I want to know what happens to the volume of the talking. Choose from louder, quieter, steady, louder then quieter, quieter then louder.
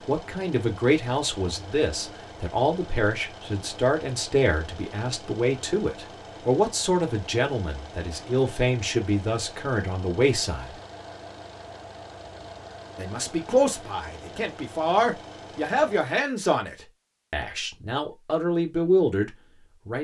steady.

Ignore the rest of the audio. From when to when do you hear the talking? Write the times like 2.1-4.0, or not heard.
0.1-10.8, 12.9-19.9.